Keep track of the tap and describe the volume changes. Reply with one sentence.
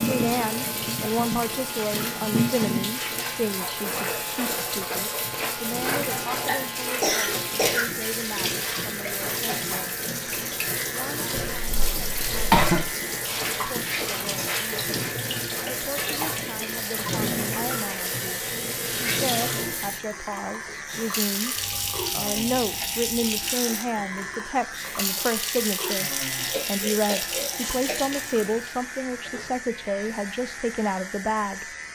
The volume of the tap stays about the same.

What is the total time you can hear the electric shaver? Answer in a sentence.
The electric shaver can be heard for 32 seconds in total.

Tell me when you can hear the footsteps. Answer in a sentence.
The footsteps can't be heard in this clip.